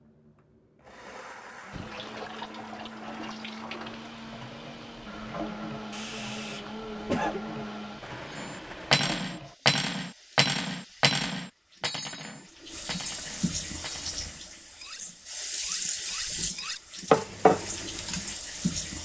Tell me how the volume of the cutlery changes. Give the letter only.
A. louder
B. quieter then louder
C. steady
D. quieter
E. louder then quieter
B.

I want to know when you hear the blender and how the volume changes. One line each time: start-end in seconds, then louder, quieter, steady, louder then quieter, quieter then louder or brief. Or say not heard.
0.0-9.1 louder.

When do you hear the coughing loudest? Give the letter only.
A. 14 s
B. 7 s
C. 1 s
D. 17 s
B.